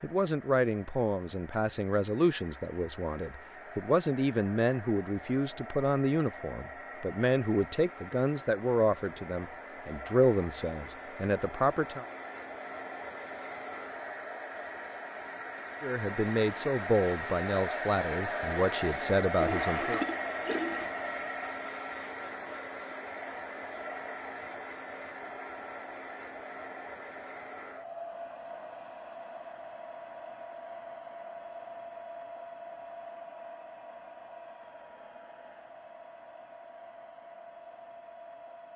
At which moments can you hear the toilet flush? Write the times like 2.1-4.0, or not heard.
19.4-20.9.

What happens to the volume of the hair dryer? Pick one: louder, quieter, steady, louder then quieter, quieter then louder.
louder then quieter.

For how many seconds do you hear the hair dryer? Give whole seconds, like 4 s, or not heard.
39 s.